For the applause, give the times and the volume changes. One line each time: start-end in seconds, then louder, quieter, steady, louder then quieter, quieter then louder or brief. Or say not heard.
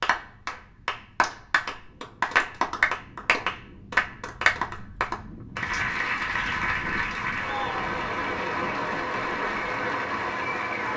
0.0-10.9 steady.